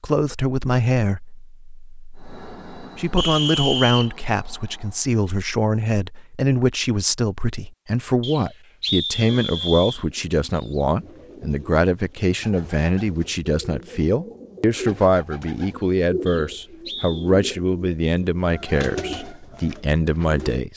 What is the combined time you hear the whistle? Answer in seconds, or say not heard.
4 s.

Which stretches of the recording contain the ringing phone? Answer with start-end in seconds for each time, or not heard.
not heard.